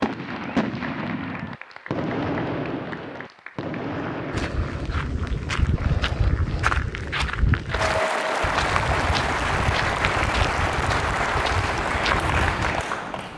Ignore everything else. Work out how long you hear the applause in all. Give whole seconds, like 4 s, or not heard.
13 s.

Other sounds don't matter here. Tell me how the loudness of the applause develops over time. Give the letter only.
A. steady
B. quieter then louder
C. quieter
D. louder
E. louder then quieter
D.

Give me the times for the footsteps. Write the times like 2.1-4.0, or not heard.
4.3-12.8.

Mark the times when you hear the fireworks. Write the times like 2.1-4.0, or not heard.
0.0-4.5.